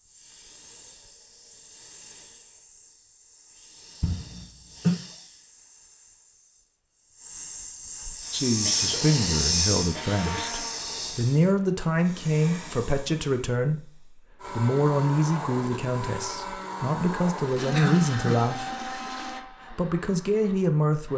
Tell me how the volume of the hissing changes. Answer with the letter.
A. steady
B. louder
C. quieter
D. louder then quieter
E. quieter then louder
D.